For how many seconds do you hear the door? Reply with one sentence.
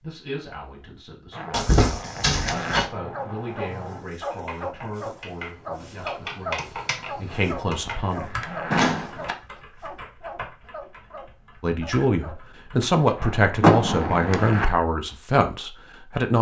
The door can be heard for 3 seconds in total.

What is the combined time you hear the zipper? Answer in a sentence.
You can hear the zipper for 5 seconds altogether.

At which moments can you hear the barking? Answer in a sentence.
You can hear the barking from 3.0 to 12.4 s.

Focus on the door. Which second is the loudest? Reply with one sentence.
The loudest moment of the door is at 14 seconds.